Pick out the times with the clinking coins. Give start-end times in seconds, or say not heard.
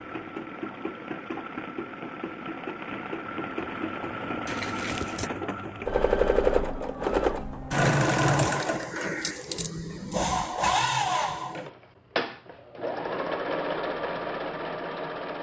4.5-5.3, 7.7-9.7.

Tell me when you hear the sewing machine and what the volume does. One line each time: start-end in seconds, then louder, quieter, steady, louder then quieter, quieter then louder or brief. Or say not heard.
0.0-15.3 louder then quieter.